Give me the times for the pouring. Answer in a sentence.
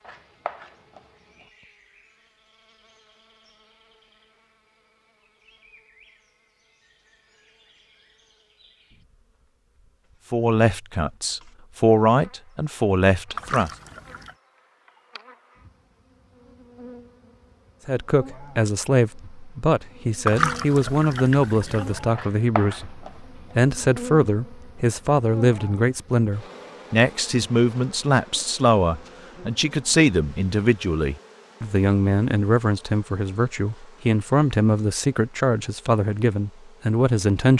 The pouring can be heard from 13.3 to 14.3 s and from 20.2 to 22.0 s.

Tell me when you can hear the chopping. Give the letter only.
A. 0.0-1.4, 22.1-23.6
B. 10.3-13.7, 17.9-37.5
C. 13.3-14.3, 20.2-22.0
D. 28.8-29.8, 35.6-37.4
A.